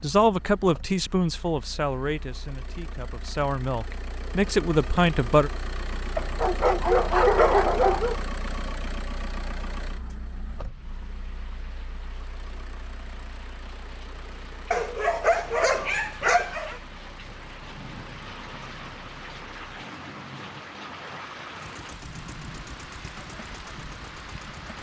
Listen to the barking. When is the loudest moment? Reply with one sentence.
The loudest moment of the barking is at 7 seconds.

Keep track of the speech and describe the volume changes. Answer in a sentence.
The loudness of the speech goes down, then up.